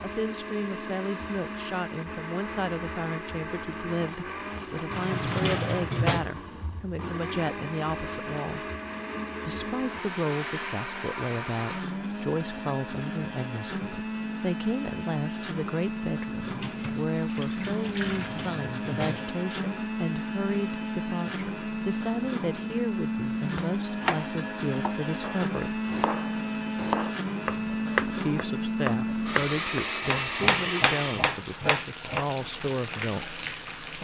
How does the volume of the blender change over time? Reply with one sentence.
The loudness of the blender goes up.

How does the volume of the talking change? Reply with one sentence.
The volume of the talking stays about the same.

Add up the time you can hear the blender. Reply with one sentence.
The blender can be heard for 31 seconds in total.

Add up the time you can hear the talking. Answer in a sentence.
The talking can be heard for 31 seconds in total.